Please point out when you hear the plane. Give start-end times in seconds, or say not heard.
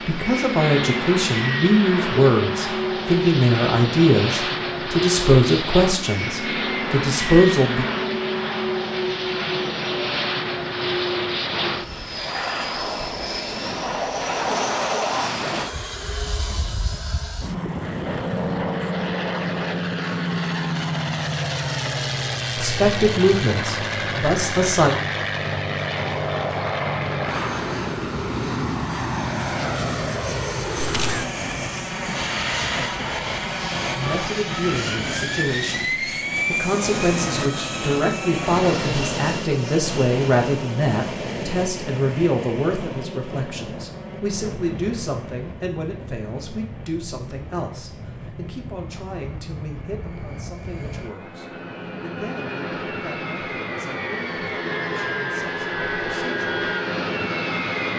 0.0-57.9.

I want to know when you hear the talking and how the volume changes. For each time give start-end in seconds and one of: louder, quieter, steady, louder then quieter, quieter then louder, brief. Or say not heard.
0.1-7.8 steady
22.6-24.9 brief
34.0-56.7 quieter.